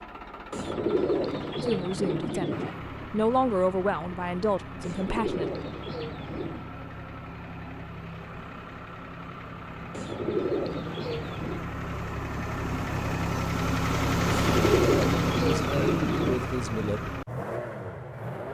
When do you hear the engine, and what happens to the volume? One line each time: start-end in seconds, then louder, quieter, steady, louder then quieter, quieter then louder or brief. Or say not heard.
0.0-18.4 louder.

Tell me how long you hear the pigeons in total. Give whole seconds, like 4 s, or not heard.
8 s.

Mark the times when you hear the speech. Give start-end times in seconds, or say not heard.
1.6-5.5, 15.4-17.0.